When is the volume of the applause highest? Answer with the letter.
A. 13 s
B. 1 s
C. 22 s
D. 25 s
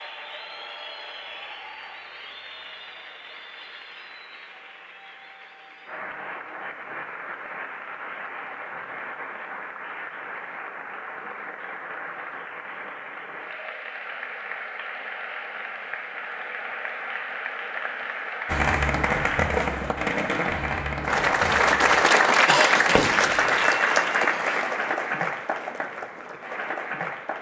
C.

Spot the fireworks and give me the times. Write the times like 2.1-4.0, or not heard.
18.4-23.7.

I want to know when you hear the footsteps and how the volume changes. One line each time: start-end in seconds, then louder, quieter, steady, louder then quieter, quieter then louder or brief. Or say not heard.
not heard.